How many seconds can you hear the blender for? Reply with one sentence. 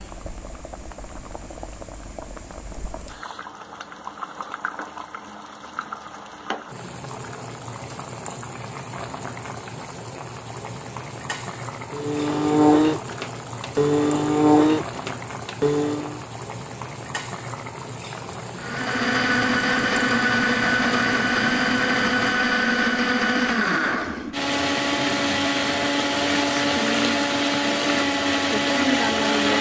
You can hear the blender for 15 seconds altogether.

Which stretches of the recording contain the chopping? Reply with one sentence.
The chopping can't be heard in this clip.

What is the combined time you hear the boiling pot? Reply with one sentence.
The boiling pot can be heard for 22 seconds in total.